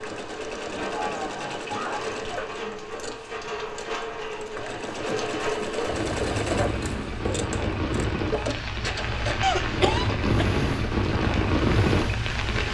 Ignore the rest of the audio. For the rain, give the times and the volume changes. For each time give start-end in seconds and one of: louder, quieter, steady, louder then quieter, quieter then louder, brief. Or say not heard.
0.0-12.7 louder.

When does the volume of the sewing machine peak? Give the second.
6 s.